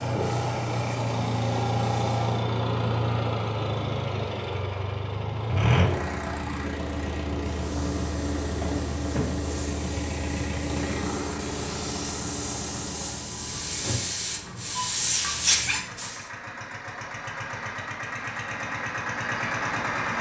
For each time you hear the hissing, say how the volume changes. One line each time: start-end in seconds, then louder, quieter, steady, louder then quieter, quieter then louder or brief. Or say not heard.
0.0-2.5 brief
7.4-16.3 louder.